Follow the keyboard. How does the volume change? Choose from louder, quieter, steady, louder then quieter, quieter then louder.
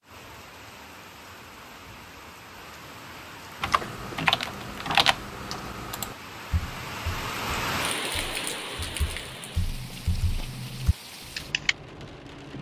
quieter then louder.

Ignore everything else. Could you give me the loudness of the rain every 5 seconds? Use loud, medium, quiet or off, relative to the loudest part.
medium, loud, medium.